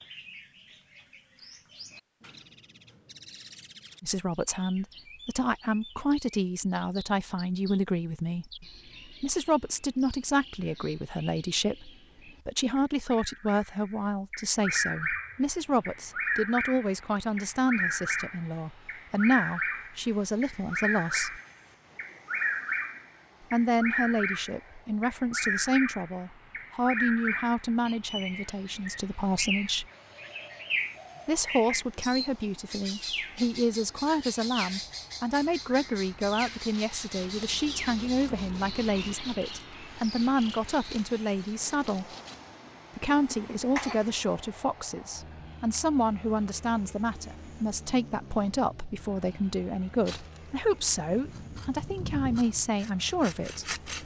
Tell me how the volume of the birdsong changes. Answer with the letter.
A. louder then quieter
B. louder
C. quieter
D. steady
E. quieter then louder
A.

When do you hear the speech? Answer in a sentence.
The speech can be heard from 4.0 to 21.4 s, from 23.5 to 29.9 s, from 31.2 to 42.0 s and from 43.0 to 53.8 s.